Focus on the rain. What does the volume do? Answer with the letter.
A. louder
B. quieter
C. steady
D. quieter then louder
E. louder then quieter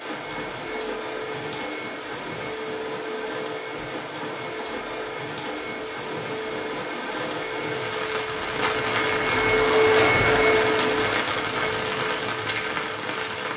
A.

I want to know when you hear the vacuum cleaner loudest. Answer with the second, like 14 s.
10 s.